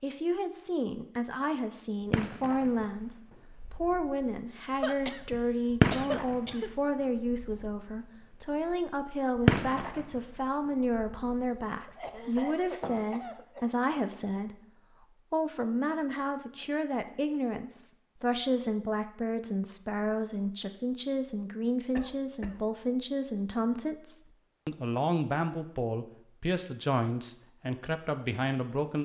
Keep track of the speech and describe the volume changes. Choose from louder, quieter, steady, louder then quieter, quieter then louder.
steady.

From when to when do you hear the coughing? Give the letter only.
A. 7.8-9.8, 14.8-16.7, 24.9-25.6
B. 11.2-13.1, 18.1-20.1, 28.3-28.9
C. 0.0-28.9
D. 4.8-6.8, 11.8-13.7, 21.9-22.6
D.